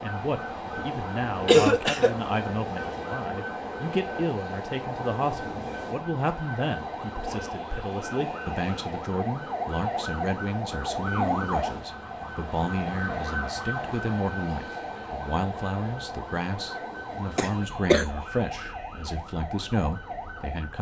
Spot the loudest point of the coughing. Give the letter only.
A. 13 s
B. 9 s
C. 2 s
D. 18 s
C.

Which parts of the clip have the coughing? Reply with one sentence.
The coughing can be heard from 1.4 to 2.1 s and from 17.4 to 18.1 s.